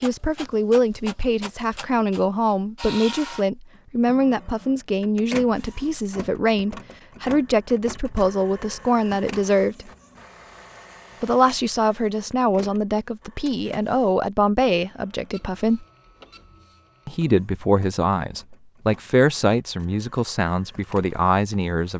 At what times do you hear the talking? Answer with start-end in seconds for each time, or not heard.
0.0-9.9, 11.2-15.8, 17.1-21.9.